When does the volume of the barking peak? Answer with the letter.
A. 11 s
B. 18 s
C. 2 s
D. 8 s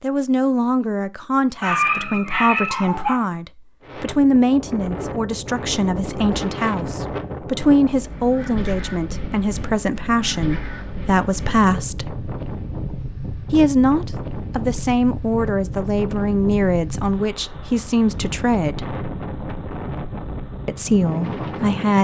C.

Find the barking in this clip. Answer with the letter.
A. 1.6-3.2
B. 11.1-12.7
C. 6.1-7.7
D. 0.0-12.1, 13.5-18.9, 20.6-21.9
A.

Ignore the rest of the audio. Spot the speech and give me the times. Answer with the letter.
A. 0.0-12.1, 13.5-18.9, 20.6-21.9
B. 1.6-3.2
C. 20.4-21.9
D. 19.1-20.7
A.